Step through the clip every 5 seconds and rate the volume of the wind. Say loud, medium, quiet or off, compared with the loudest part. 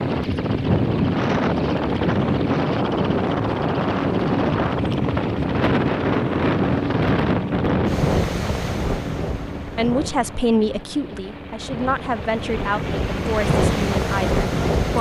loud, loud, medium.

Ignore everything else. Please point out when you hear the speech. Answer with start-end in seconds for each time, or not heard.
9.8-14.9.